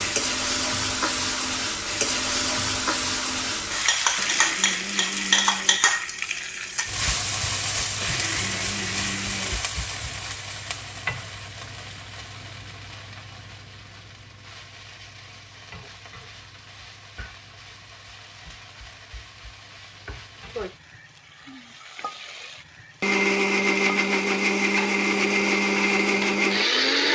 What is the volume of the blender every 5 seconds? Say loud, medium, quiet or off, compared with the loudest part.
quiet, quiet, off, off, loud, loud.